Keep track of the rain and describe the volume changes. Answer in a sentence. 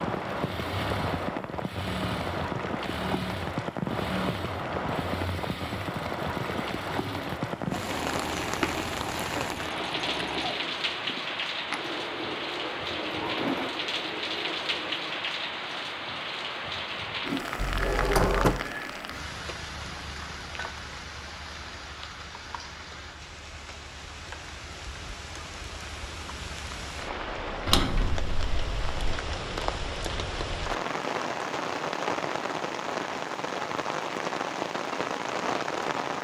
The volume of the rain goes down, then up.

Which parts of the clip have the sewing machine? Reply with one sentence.
The sewing machine can be heard from 0.2 to 15.2 s.